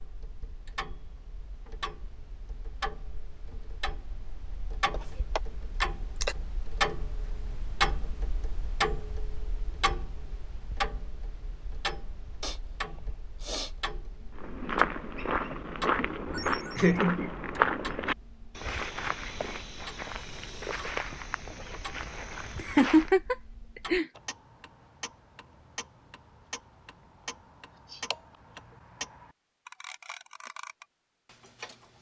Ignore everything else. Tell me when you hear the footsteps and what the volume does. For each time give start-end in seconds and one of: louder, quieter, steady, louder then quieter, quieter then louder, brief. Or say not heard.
14.3-23.1 quieter.